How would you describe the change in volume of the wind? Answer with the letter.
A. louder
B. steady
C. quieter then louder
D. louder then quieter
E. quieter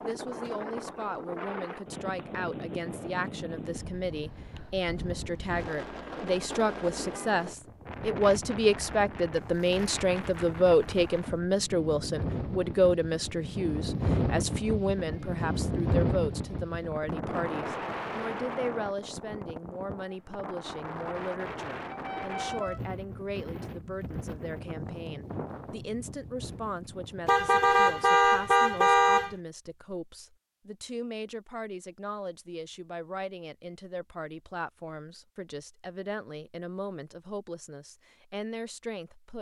D.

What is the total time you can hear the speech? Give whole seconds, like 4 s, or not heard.
39 s.